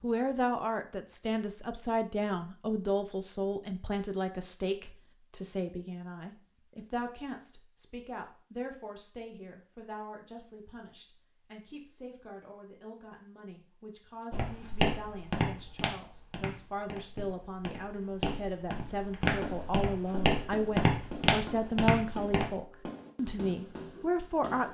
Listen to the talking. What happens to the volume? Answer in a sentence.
The loudness of the talking goes down, then up.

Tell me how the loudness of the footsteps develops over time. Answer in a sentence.
The volume of the footsteps goes down, then up.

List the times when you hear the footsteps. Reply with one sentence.
The footsteps can be heard from 14.3 to 22.5 s.